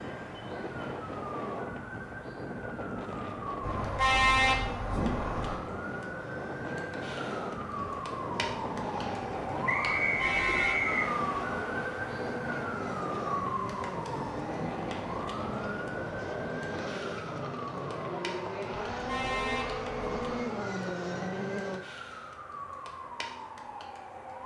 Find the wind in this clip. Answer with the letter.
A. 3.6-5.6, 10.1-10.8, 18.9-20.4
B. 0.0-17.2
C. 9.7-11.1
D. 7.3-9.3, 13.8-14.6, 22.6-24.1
B.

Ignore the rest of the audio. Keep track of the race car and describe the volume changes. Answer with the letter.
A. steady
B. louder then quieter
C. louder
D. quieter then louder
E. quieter
C.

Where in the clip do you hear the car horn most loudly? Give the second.
4 s.